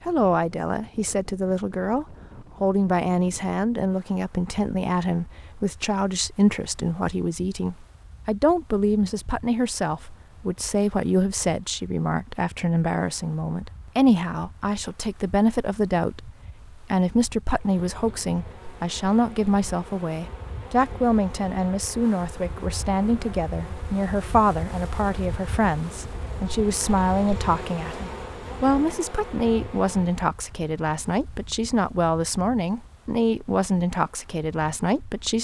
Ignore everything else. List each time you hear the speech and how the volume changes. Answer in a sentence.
You can hear the speech from 0.1 to 35.3 s, at a steady volume.